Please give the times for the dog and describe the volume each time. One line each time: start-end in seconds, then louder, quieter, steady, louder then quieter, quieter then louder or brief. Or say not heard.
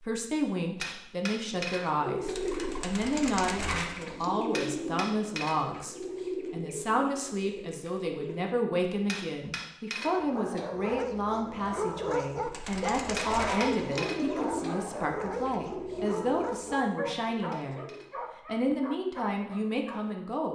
10.0-20.2 quieter.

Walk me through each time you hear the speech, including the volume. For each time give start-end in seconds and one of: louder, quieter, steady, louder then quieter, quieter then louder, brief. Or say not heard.
0.0-17.9 steady
18.4-20.4 brief.